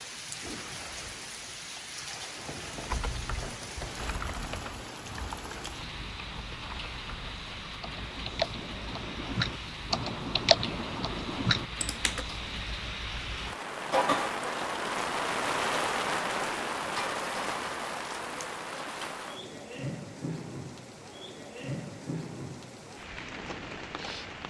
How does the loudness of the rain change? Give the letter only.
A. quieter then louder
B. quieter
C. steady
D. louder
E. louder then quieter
E.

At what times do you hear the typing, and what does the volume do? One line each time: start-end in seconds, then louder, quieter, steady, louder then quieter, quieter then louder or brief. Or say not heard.
2.9-12.2 louder.